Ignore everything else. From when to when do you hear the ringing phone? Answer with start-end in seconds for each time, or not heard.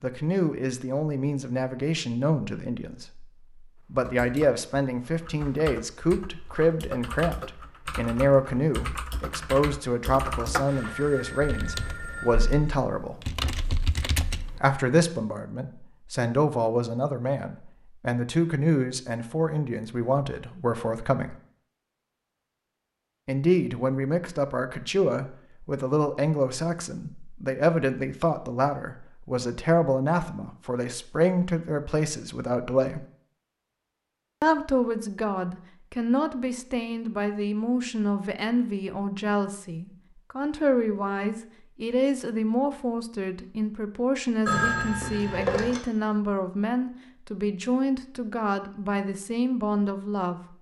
10.7-12.7, 44.5-45.8.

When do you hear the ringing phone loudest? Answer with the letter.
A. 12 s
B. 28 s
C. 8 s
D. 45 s
D.